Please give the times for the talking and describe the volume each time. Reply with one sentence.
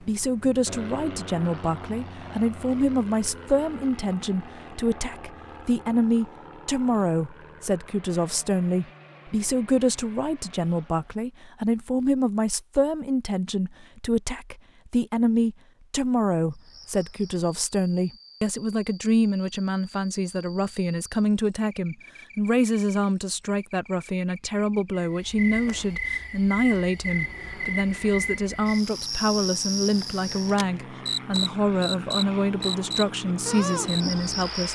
The talking can be heard from 0.0 to 34.7 s, at a steady volume.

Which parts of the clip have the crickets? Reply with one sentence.
You can hear the crickets from 16.5 to 34.7 s.